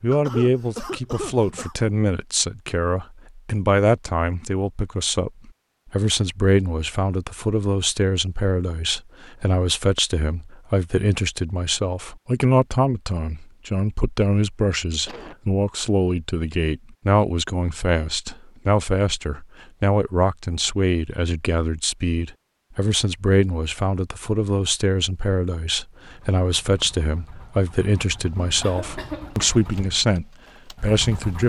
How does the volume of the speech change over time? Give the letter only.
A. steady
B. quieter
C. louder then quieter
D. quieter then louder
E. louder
A.